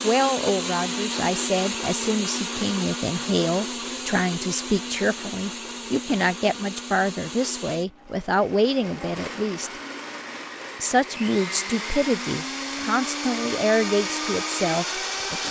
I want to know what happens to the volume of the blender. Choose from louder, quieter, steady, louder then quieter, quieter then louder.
quieter then louder.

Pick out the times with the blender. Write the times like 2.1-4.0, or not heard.
0.0-15.4.